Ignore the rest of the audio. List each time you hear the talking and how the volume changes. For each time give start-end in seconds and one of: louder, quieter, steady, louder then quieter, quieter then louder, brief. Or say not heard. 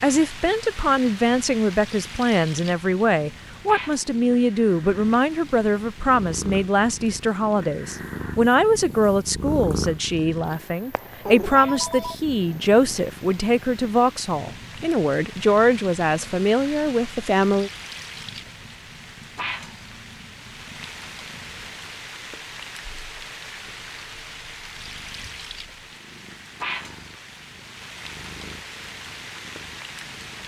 0.0-17.7 steady.